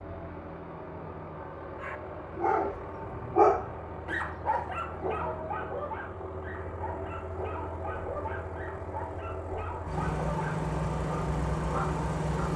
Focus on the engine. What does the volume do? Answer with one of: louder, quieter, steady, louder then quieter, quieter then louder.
louder.